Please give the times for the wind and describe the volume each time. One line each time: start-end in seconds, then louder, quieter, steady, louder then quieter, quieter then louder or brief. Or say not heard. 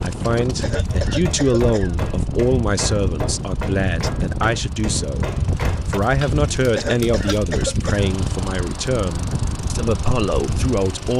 0.0-11.1 steady.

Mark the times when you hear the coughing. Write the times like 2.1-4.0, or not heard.
0.6-1.9, 6.8-8.1.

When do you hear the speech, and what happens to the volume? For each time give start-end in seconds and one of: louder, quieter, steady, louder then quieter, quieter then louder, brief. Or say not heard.
0.0-11.1 steady.